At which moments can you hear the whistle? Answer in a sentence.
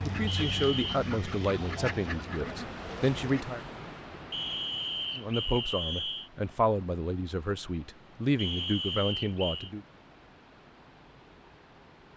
You can hear the whistle from 0.2 to 1.0 s, from 4.3 to 6.3 s and from 8.3 to 9.7 s.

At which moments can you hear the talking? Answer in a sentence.
The talking can be heard from 0.0 to 3.6 s and from 5.2 to 9.8 s.